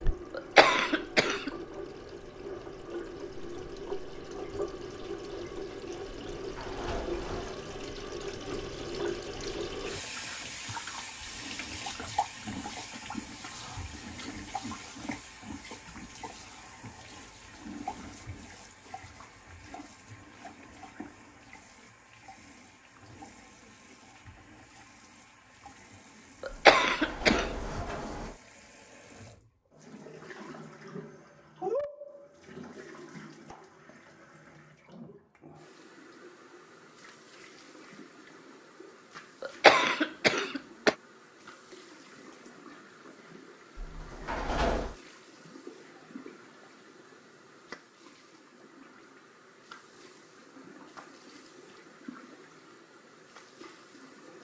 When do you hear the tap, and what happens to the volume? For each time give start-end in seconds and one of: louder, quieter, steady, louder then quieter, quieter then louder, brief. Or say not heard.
0.0-54.3 quieter.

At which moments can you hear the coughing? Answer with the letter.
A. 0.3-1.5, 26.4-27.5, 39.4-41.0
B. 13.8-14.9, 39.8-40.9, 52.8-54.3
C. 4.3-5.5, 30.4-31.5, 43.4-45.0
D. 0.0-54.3
A.